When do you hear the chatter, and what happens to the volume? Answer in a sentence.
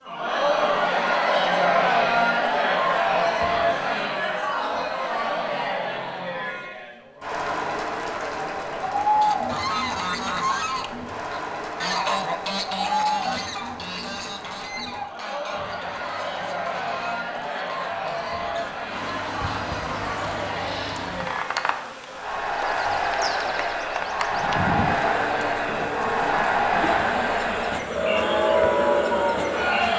You can hear the chatter from 0.0 to 29.9 s, getting quieter then louder.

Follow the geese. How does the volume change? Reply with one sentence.
The volume of the geese goes down.